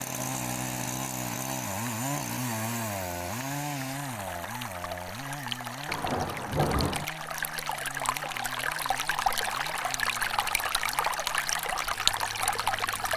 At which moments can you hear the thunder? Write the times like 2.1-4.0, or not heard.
5.8-7.0.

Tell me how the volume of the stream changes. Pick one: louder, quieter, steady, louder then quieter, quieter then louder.
louder.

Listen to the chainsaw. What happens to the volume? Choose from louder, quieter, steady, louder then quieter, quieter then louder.
quieter.